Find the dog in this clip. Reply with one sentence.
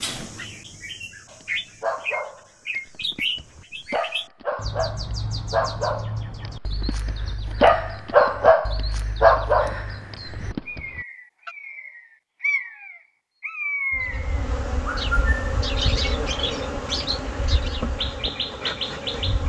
The dog can be heard from 1.3 to 11.5 s.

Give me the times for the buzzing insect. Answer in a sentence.
The buzzing insect can be heard from 13.9 to 19.4 s.